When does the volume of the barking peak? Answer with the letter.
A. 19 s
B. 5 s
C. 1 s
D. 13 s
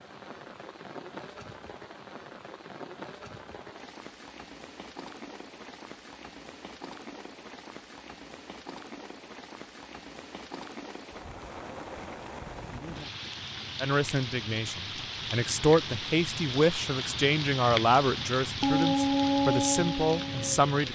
A.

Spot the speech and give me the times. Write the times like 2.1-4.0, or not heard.
13.8-20.9.